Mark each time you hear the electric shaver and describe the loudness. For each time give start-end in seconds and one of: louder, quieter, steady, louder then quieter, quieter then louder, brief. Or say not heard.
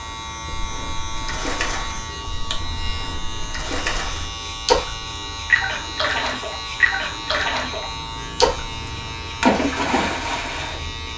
0.0-11.1 steady.